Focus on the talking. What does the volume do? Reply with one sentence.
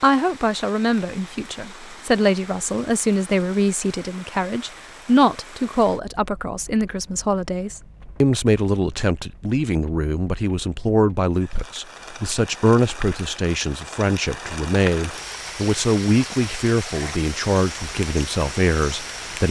The volume of the talking stays about the same.